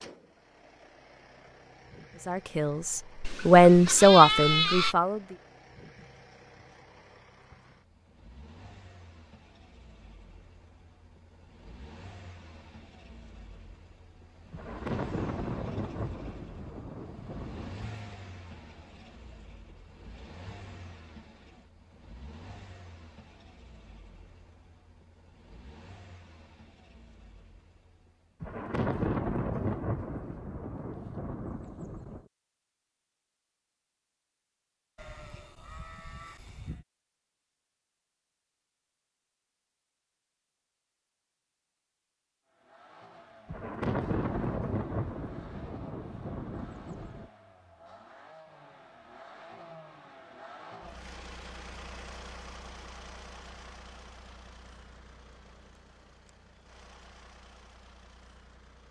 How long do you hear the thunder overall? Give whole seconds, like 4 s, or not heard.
11 s.